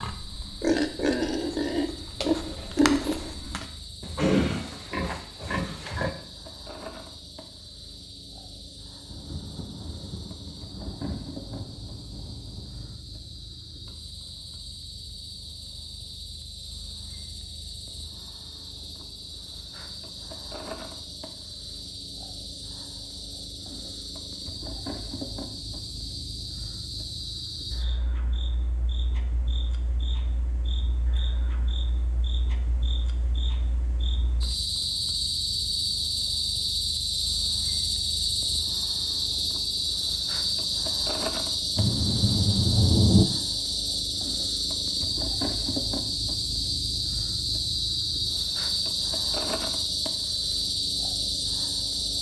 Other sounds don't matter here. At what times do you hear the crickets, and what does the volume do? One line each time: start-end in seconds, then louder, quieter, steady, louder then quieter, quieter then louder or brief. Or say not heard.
0.0-52.1 louder.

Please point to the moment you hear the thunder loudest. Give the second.
43 s.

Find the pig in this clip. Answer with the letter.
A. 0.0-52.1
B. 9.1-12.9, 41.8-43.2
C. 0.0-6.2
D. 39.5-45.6
C.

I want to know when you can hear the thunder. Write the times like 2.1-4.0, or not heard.
9.1-12.9, 41.8-43.2.